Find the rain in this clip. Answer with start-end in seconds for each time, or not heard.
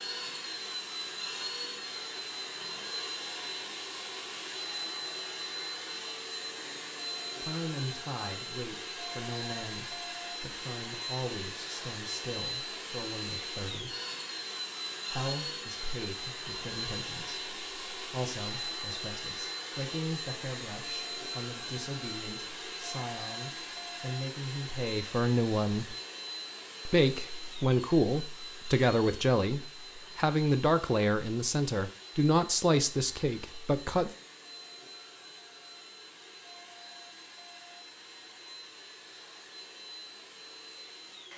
not heard.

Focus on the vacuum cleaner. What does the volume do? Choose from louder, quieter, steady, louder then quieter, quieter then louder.
quieter.